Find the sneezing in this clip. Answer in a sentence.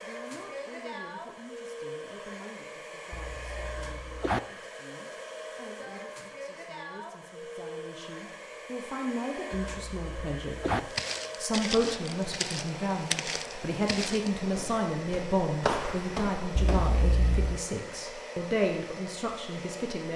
The sneezing can be heard from 3.1 to 4.4 s, from 9.6 to 10.8 s and from 16.6 to 17.6 s.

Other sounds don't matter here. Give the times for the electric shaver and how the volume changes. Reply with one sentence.
The electric shaver can't be heard in this clip.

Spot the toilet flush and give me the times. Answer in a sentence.
You can't hear the toilet flush here.